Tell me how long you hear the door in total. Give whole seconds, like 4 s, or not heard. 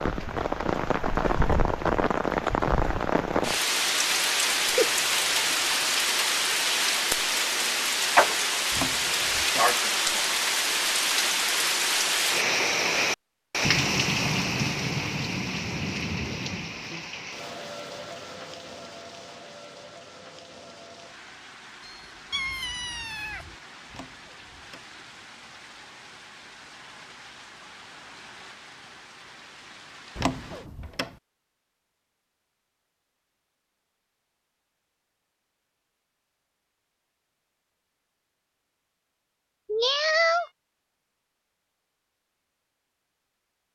3 s.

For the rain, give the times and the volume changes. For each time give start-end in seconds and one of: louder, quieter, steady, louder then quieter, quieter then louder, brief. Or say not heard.
0.0-30.7 quieter.